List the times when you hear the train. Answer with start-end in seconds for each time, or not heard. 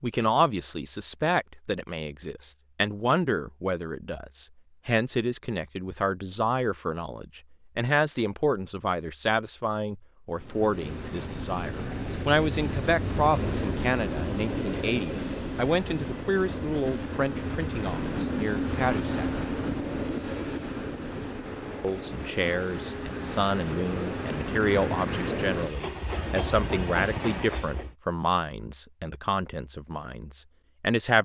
10.3-27.9.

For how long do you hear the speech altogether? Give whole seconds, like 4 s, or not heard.
29 s.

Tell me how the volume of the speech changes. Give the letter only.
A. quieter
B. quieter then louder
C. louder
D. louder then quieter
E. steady
E.